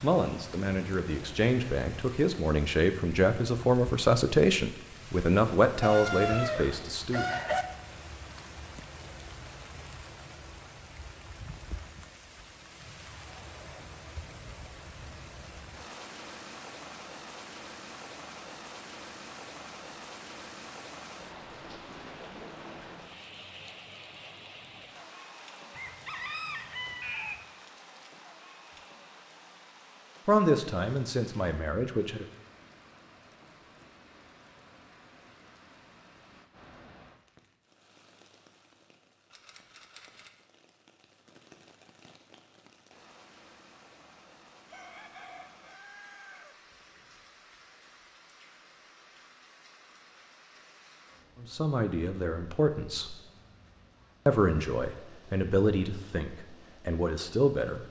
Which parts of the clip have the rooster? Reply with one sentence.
The rooster can be heard from 5.8 to 7.7 s, from 25.7 to 27.4 s and from 44.6 to 46.6 s.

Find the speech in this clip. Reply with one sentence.
The speech can be heard from 0.0 to 7.2 s, from 30.2 to 32.2 s, from 51.4 to 53.1 s and from 54.2 to 57.8 s.